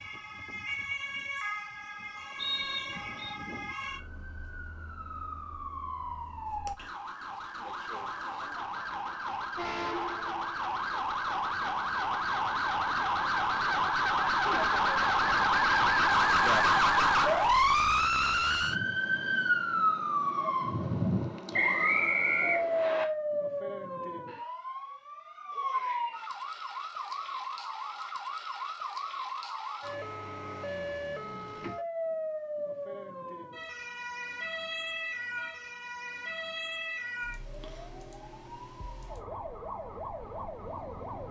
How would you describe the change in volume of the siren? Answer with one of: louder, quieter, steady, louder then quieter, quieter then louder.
louder then quieter.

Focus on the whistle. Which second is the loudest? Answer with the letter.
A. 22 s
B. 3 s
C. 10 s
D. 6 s
A.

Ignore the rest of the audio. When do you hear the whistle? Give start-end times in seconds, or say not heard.
2.4-3.4, 21.5-23.1.